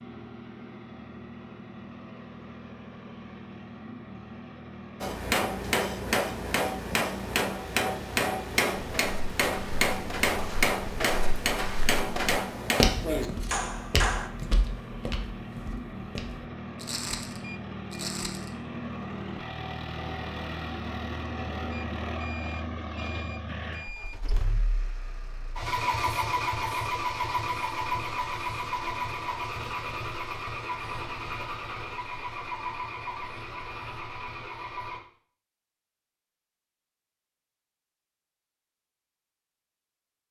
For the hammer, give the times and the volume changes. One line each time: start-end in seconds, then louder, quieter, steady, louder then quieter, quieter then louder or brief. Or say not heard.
5.0-14.3 steady.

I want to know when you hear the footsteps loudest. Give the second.
13 s.